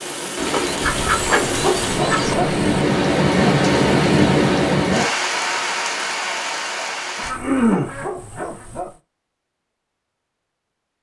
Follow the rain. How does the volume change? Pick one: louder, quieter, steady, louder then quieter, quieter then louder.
louder then quieter.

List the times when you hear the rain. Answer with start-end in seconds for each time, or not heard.
0.0-7.3.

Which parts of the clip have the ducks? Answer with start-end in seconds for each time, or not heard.
0.3-2.4, 7.2-8.7.